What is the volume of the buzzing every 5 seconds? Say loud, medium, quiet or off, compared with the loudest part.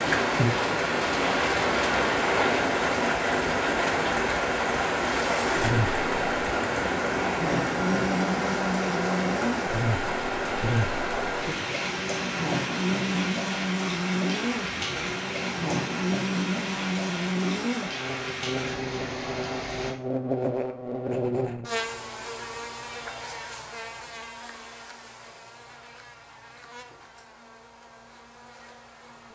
off, loud, loud, loud, loud, quiet.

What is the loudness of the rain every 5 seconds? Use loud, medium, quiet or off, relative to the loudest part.
loud, loud, medium, medium, off, off.